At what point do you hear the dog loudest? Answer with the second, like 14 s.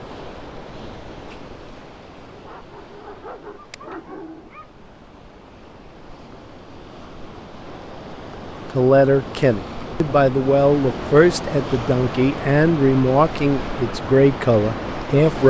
4 s.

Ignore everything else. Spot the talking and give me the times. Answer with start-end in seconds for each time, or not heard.
8.8-15.4.